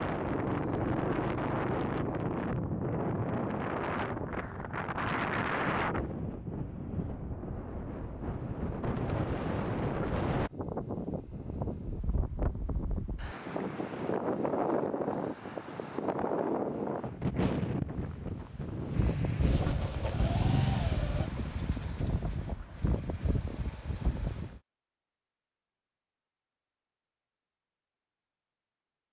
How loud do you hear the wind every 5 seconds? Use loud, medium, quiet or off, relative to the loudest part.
loud, loud, loud, loud, medium, off.